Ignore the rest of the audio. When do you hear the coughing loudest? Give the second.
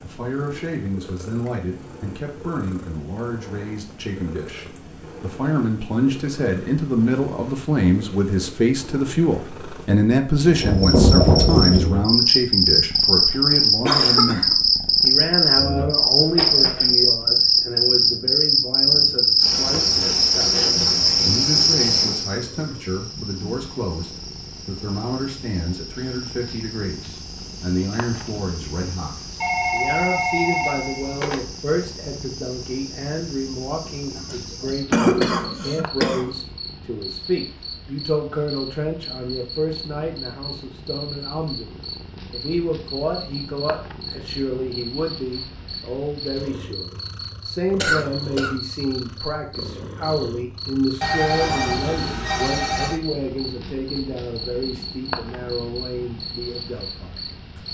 35 s.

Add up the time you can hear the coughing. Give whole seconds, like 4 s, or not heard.
4 s.